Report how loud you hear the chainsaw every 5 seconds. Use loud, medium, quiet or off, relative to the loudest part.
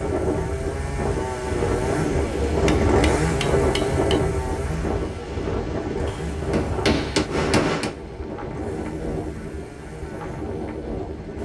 loud, medium, quiet.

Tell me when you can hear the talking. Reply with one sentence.
The talking can't be heard in this clip.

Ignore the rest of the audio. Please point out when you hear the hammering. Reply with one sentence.
The hammering can be heard from 2.6 to 4.2 s and from 6.0 to 8.0 s.